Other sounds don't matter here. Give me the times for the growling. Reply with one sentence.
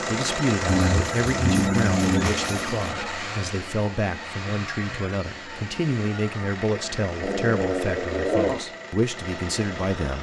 The growling can be heard from 0.7 to 2.8 s and from 7.2 to 8.6 s.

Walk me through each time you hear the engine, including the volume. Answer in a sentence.
The engine can be heard from 0.0 to 10.1 s, getting quieter.